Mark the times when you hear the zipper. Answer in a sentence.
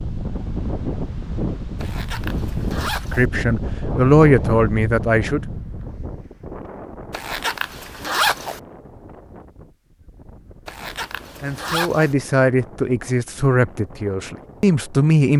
You can hear the zipper from 1.8 to 3.2 s, from 7.1 to 8.6 s and from 10.7 to 12.2 s.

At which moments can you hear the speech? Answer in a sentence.
You can hear the speech from 3.1 to 5.4 s and from 11.3 to 15.3 s.